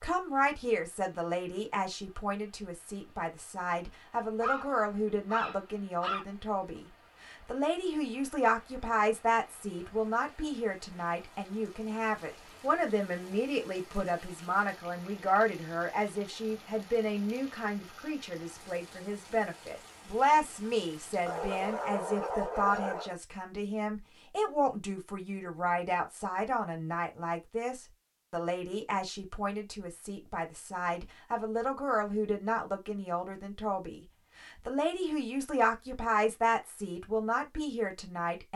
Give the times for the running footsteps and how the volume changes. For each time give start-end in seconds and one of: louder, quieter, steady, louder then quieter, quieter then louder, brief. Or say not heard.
not heard.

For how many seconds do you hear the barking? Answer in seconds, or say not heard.
4 s.